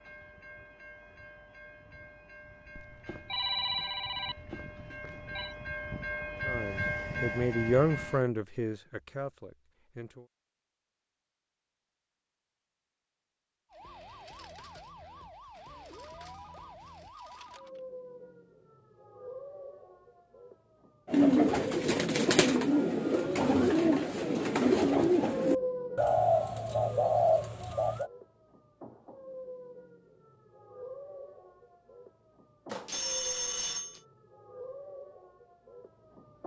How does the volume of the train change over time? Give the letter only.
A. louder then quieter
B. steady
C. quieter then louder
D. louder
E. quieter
D.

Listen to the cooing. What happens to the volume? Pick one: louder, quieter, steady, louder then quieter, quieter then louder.
steady.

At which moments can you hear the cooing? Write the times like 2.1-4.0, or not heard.
21.1-28.1.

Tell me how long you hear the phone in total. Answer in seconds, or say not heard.
6 s.